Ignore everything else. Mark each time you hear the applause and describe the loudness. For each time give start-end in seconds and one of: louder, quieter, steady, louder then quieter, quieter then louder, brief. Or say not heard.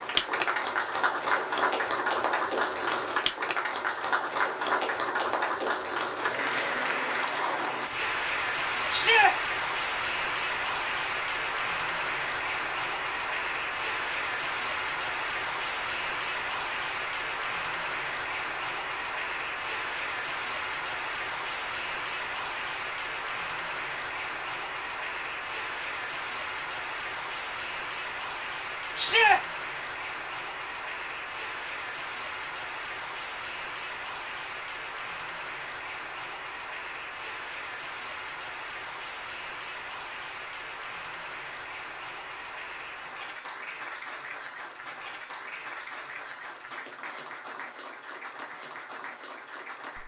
0.0-50.0 quieter.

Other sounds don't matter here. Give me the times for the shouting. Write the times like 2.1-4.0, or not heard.
8.9-9.3, 28.9-29.4.